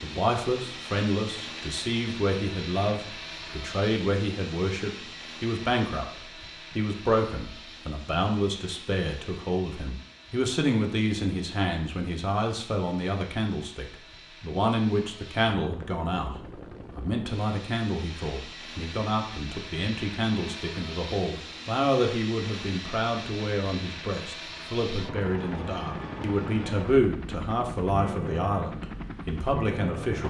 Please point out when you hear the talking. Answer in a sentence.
The talking can be heard from 0.0 to 30.2 s.